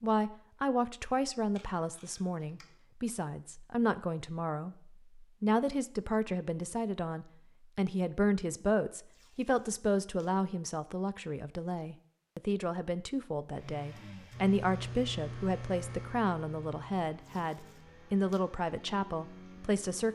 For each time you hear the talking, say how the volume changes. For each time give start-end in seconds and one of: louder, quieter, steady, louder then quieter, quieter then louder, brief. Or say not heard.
0.0-20.0 steady.